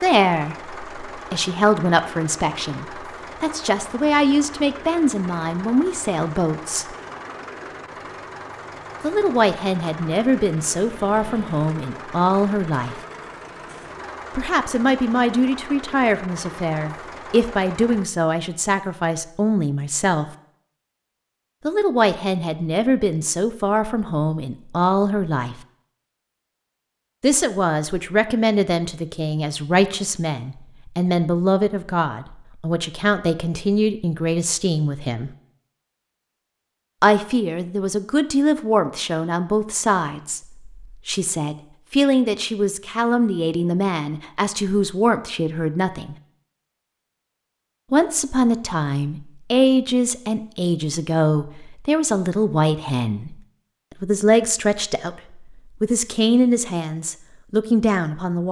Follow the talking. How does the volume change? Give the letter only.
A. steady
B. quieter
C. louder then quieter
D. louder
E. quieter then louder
A.